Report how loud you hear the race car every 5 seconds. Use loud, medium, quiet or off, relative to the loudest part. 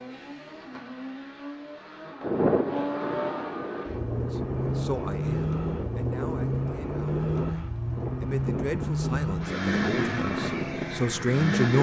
medium, loud, loud.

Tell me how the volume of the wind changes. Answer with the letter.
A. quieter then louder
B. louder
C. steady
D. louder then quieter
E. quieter
C.